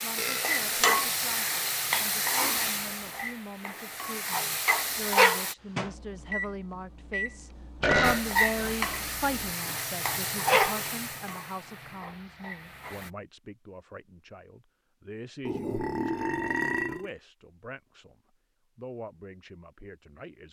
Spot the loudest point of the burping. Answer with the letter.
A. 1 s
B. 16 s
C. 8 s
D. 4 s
C.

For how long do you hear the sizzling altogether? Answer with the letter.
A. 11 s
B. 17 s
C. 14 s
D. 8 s
A.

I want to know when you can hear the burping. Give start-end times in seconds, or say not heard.
0.1-0.8, 7.8-8.8, 15.4-17.1.